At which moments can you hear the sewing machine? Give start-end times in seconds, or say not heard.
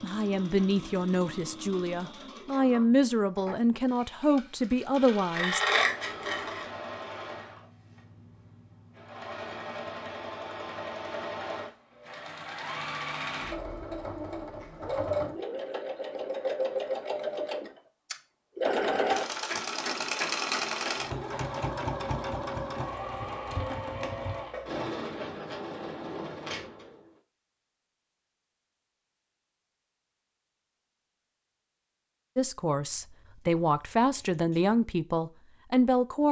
0.0-27.1.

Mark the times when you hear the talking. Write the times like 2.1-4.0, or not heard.
0.0-5.6, 32.4-36.2.